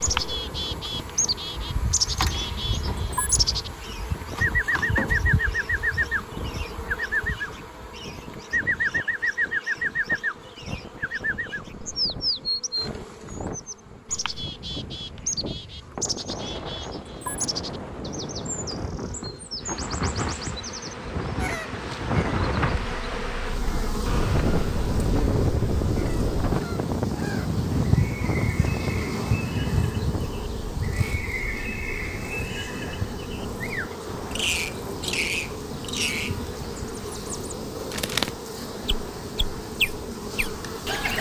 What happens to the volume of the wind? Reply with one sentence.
The volume of the wind goes up, then down.